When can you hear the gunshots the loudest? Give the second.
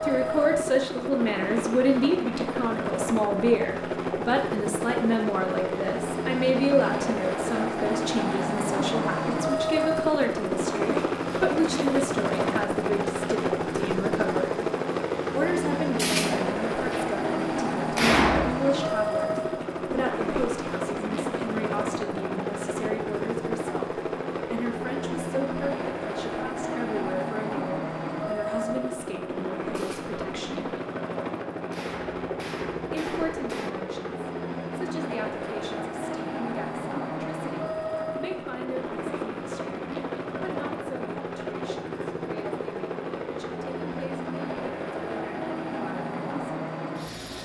18 s.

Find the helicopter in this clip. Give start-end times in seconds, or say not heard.
0.0-47.3.